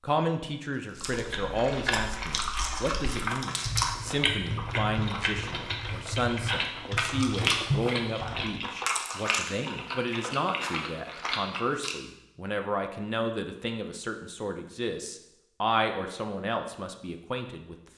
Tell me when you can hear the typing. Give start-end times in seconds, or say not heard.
0.9-8.6.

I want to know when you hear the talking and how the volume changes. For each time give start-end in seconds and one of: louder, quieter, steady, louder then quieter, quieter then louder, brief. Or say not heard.
0.0-17.8 steady.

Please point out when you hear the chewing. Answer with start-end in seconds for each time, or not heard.
0.9-11.9.